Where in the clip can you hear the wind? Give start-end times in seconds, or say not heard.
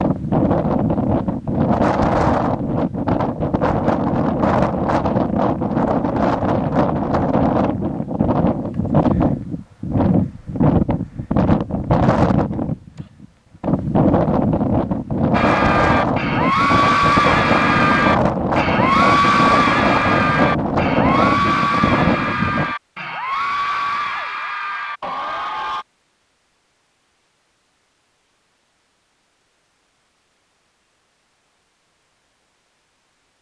0.0-22.8.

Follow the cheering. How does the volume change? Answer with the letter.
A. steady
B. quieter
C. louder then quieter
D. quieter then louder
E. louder
B.